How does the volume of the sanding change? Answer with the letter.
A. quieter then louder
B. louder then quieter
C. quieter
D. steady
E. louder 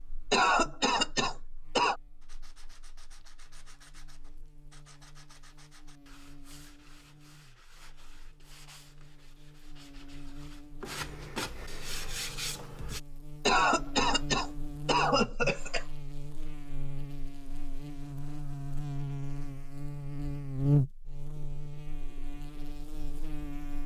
E.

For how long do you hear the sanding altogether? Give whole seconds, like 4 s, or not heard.
11 s.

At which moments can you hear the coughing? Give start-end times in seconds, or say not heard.
0.3-2.0, 13.4-15.8.